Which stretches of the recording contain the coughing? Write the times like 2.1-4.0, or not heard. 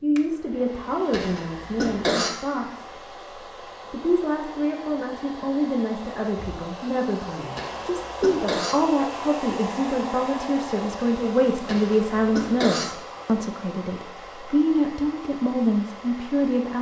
1.1-2.3, 7.5-8.8, 11.7-12.8.